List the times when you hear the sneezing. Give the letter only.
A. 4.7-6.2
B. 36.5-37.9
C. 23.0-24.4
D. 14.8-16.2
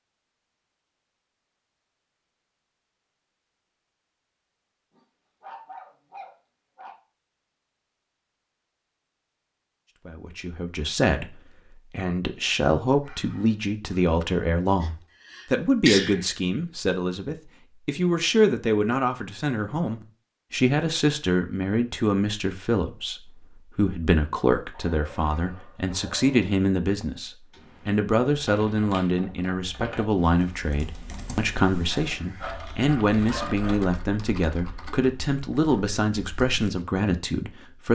D.